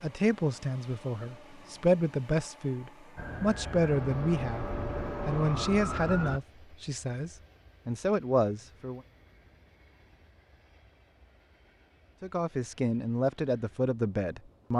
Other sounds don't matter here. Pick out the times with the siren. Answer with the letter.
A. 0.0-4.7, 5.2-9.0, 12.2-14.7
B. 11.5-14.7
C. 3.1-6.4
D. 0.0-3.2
C.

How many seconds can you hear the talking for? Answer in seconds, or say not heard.
11 s.